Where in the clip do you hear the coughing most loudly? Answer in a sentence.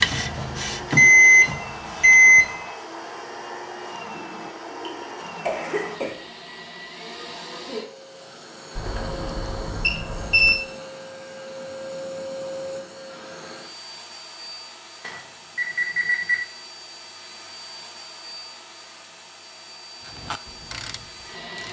The volume of the coughing peaks at 6 seconds.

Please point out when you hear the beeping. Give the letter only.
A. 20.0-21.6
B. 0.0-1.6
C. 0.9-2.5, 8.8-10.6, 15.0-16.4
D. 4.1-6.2
C.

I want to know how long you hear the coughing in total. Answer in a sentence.
The coughing can be heard for 2 seconds in total.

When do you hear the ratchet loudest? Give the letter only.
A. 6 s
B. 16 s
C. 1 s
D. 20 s
D.